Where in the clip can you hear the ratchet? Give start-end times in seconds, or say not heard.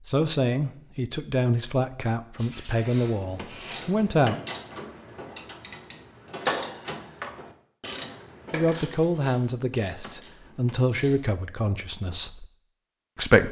3.0-11.2.